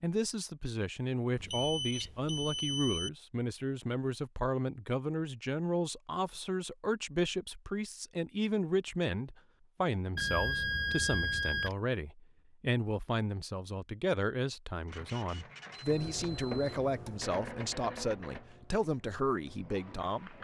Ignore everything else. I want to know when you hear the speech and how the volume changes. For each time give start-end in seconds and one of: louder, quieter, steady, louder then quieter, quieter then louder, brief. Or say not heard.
0.0-20.3 steady.